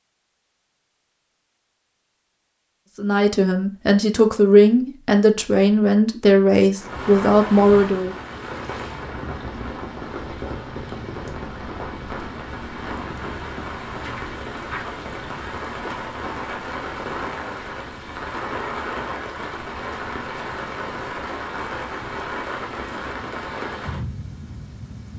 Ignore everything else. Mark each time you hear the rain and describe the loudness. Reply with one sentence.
You can hear the rain from 6.7 to 25.1 s, at a steady volume.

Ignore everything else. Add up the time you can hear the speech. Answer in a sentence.
The speech can be heard for 5 seconds in total.